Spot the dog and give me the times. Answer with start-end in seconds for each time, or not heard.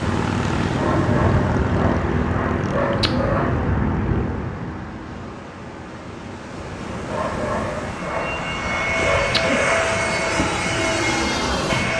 0.8-3.6, 7.1-9.8.